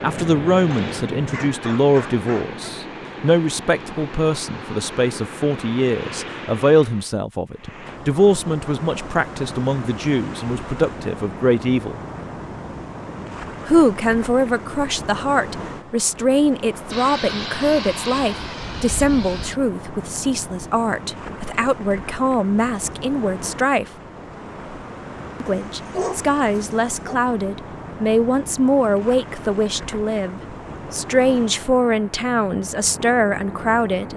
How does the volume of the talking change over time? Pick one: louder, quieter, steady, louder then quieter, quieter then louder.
steady.